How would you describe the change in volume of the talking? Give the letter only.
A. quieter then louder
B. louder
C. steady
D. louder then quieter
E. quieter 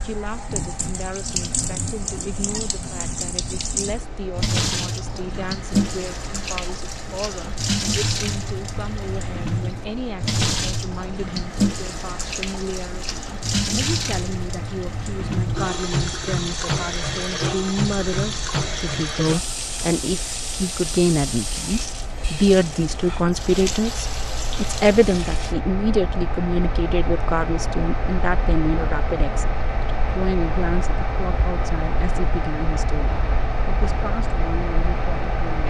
D.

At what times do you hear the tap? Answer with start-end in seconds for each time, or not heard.
0.0-25.6.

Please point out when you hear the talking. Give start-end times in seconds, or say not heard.
0.0-35.6.